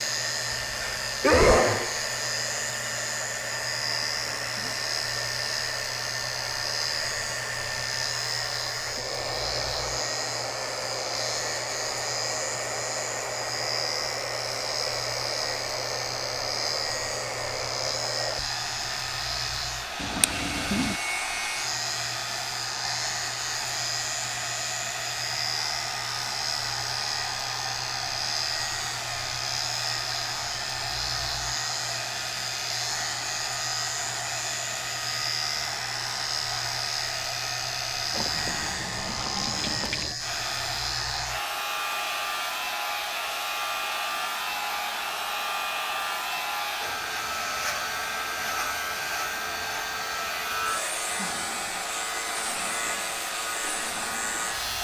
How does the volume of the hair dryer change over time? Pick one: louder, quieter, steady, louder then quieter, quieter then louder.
steady.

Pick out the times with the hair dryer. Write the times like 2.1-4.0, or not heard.
0.0-54.7.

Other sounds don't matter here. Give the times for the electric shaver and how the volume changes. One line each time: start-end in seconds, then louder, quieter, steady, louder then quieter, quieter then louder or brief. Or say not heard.
0.0-54.7 steady.